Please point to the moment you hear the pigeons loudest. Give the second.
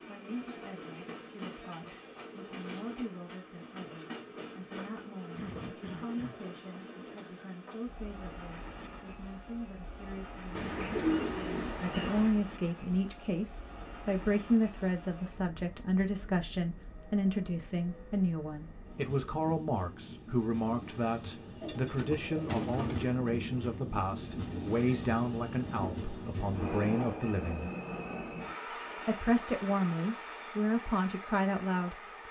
11 s.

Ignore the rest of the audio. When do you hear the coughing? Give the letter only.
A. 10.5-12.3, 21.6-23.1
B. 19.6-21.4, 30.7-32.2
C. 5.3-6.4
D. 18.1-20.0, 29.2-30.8
C.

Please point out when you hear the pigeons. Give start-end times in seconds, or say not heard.
10.5-12.3, 21.6-23.1.